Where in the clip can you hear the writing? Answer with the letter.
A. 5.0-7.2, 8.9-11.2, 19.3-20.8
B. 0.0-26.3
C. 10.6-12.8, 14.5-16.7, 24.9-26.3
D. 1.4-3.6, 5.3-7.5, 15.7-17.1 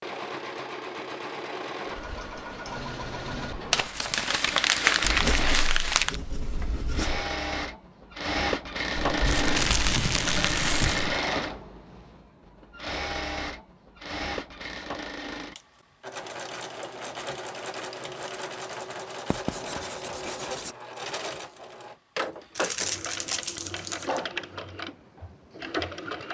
A.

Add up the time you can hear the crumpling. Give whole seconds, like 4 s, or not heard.
6 s.